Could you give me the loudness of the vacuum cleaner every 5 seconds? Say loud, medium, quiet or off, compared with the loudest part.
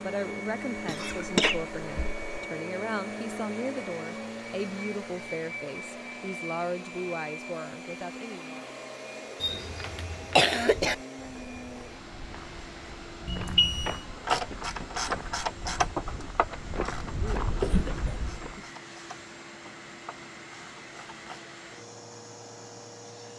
loud, loud, medium, medium, medium.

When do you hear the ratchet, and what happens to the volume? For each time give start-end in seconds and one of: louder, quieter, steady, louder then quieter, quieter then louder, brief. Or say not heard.
14.2-21.4 quieter.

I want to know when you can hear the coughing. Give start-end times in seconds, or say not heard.
0.8-2.4, 9.4-10.9, 17.6-18.6.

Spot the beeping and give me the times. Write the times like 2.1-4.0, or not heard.
13.2-14.0.